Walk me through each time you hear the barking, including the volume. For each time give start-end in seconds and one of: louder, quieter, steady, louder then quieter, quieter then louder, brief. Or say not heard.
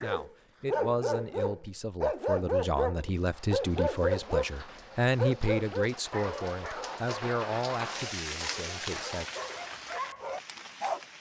0.0-11.1 quieter.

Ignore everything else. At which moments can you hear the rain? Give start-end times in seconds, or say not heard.
3.1-11.1.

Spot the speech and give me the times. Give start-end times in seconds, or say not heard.
0.0-9.2.